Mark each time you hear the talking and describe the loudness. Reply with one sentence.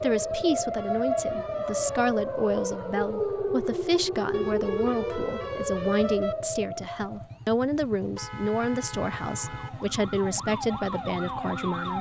The talking can be heard from 0.0 to 11.9 s, at a steady volume.